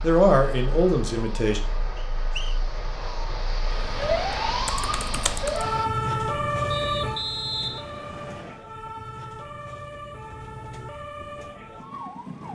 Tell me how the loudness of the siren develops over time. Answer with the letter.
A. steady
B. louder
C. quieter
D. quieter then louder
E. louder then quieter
E.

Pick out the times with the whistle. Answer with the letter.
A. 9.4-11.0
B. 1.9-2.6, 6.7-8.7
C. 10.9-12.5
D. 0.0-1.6
B.